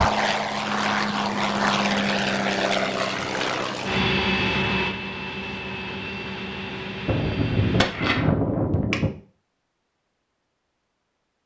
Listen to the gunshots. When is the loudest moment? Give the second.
8 s.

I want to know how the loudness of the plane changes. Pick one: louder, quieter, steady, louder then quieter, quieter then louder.
quieter.